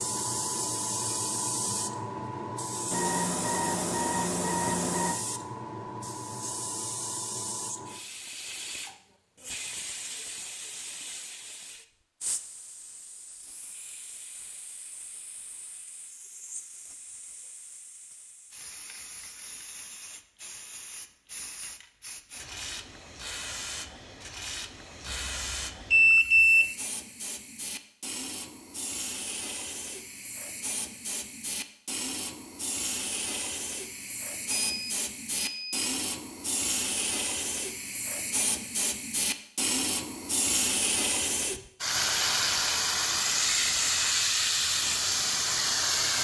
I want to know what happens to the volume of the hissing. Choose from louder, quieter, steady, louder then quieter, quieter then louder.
quieter then louder.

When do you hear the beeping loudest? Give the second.
26 s.